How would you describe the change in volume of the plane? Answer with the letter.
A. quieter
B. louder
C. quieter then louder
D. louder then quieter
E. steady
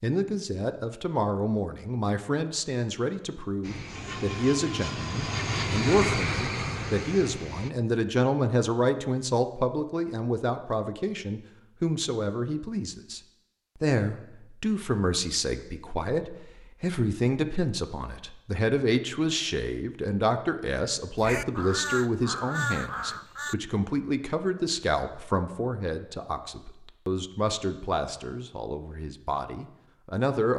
D.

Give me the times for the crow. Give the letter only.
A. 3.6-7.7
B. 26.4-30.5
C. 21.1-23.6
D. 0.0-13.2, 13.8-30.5
C.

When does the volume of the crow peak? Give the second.
23 s.